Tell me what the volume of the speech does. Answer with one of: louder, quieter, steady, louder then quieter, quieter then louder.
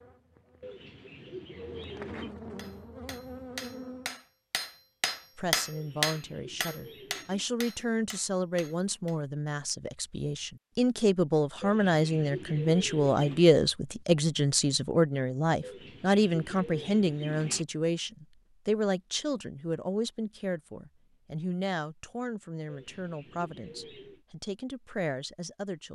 louder then quieter.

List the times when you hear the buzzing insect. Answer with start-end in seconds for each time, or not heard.
0.0-4.2.